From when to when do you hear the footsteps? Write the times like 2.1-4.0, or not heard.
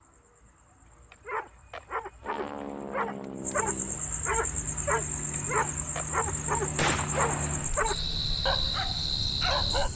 not heard.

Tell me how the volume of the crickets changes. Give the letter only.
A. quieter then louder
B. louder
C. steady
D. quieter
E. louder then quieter
B.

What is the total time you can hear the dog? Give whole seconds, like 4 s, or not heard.
9 s.